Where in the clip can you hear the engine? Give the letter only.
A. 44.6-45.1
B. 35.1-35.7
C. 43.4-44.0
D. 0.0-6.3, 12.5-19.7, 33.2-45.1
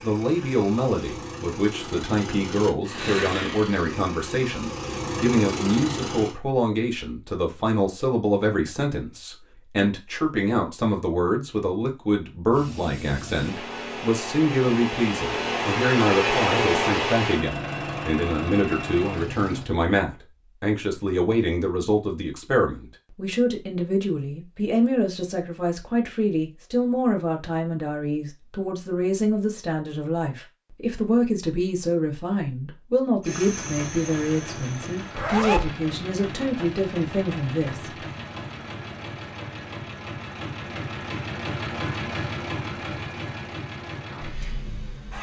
D.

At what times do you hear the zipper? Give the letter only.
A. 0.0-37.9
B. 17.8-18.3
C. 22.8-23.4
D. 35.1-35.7
D.